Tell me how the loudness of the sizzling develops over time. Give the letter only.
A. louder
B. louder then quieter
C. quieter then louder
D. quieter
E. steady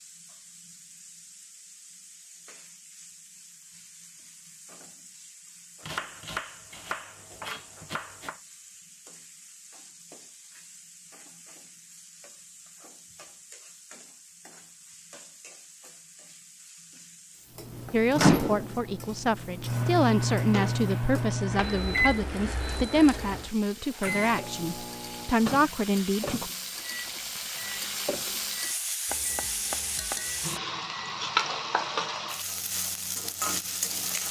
A.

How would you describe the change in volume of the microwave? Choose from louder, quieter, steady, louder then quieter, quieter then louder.
quieter.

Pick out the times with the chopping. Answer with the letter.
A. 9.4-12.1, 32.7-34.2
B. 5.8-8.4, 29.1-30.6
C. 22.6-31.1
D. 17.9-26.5
B.